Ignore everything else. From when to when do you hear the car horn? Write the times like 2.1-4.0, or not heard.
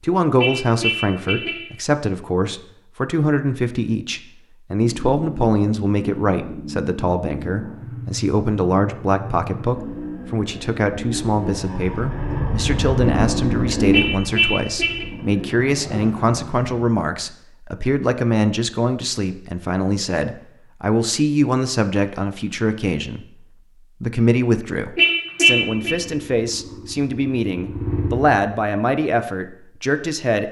0.3-1.7, 13.9-15.1, 24.9-25.9.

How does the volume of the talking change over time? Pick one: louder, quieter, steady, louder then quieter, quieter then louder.
steady.